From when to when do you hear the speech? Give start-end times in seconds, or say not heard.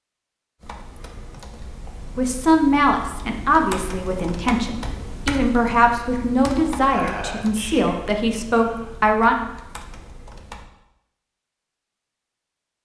2.1-9.3.